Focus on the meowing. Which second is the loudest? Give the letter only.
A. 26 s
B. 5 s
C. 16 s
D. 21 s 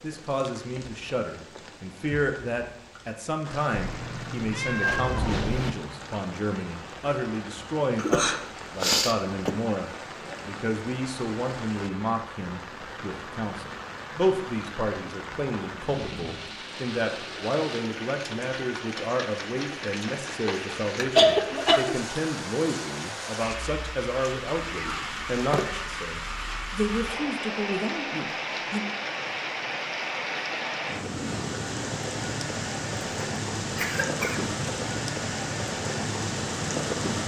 B.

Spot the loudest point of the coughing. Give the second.
21 s.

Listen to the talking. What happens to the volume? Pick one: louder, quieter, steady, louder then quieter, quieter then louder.
steady.